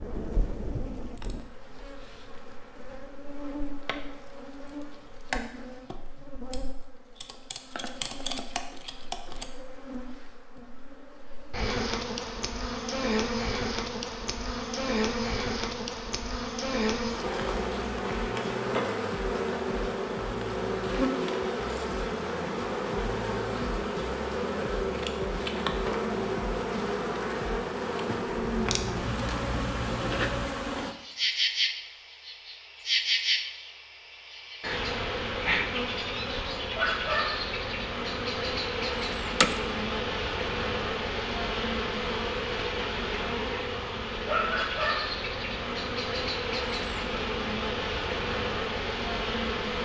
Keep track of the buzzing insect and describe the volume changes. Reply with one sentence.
The volume of the buzzing insect goes up.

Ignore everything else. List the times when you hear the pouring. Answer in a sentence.
You can hear the pouring from 28.6 to 30.5 s.